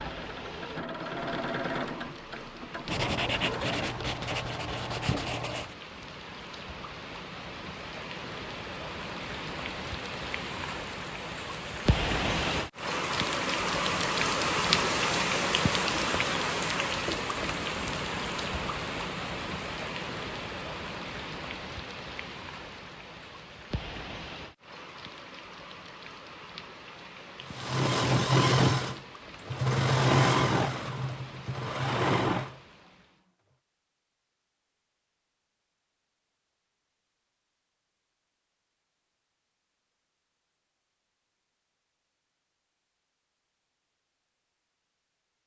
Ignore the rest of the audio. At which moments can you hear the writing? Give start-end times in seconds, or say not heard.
2.9-5.8.